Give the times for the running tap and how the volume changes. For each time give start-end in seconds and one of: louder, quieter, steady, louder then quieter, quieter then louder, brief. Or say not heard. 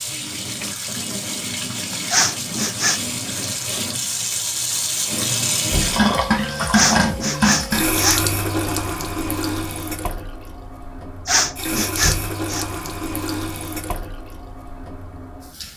0.0-15.7 louder then quieter.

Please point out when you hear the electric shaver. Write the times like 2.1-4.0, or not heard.
not heard.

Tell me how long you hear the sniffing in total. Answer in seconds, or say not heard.
4 s.